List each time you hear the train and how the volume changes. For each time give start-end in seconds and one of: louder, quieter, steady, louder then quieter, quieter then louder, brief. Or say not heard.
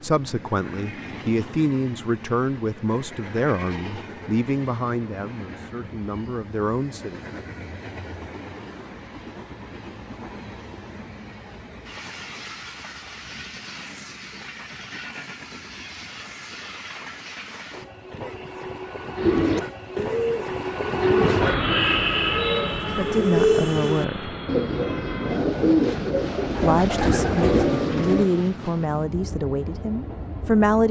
0.0-30.8 louder then quieter.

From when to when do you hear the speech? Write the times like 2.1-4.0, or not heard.
0.0-7.2, 22.9-24.4, 26.6-30.8.